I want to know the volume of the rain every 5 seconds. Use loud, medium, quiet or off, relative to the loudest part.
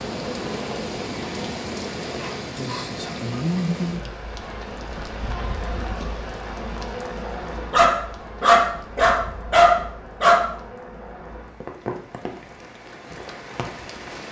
loud, medium, medium.